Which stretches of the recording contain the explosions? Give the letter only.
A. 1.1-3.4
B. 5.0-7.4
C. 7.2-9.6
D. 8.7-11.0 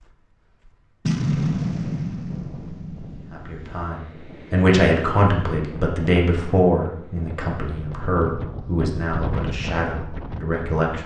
A.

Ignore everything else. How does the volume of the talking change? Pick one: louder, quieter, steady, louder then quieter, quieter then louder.
quieter.